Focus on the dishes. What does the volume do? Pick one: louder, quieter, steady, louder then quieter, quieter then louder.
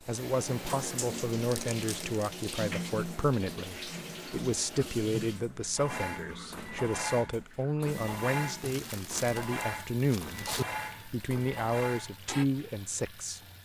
steady.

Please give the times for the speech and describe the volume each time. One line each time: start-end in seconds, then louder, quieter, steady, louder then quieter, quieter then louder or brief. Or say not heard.
0.1-13.4 steady.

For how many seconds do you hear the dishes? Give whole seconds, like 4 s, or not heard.
7 s.